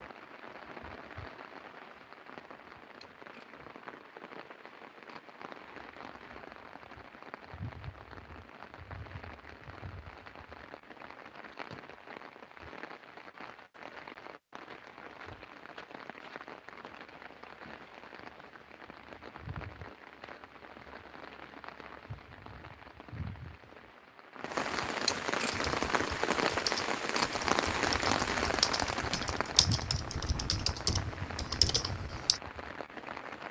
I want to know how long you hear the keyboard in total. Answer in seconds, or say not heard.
7 s.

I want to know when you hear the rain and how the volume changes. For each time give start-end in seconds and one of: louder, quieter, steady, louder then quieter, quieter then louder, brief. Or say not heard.
0.0-33.4 louder.